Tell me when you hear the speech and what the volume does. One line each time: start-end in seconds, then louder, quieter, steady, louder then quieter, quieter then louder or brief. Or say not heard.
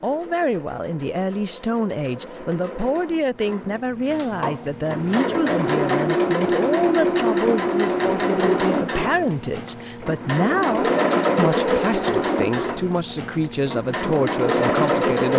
0.0-15.3 steady.